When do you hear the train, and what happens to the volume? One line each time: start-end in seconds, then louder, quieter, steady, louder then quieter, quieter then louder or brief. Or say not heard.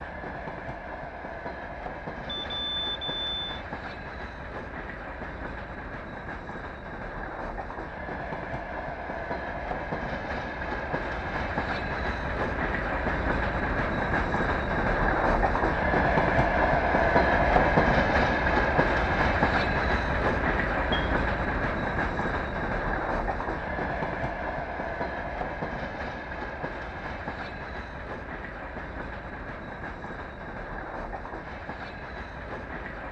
0.0-33.0 louder then quieter.